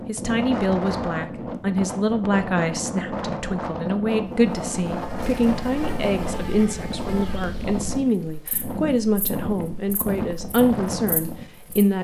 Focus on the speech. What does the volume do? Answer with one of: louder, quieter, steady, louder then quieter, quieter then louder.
steady.